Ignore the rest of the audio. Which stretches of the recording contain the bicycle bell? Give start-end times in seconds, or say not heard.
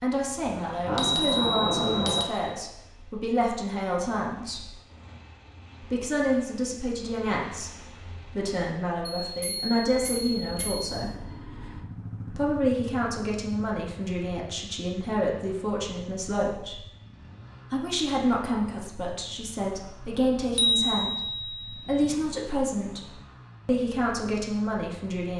0.8-2.2, 9.2-11.0, 20.6-22.1.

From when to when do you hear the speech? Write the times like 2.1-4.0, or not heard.
0.0-4.7, 5.8-11.2, 12.3-16.8, 17.7-25.3.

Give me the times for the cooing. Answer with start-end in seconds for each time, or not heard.
not heard.